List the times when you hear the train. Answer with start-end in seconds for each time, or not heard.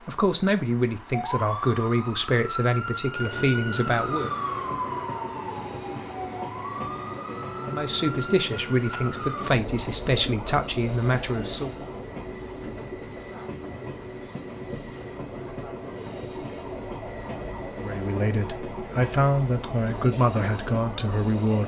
3.1-21.6.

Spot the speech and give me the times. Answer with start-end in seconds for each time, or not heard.
0.1-4.3, 7.6-11.8, 17.8-21.6.